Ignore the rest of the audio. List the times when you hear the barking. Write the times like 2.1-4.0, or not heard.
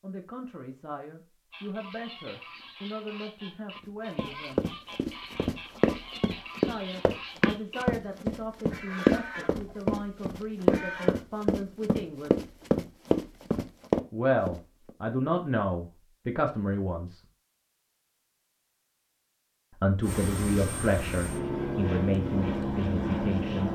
not heard.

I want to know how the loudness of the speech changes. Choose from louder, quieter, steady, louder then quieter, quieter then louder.
louder.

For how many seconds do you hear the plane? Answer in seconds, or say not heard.
4 s.